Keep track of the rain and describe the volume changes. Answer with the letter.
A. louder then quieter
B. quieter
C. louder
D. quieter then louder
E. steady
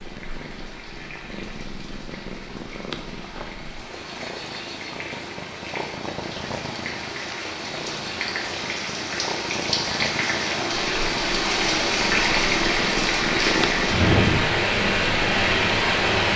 C.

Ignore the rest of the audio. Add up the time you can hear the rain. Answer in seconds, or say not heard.
16 s.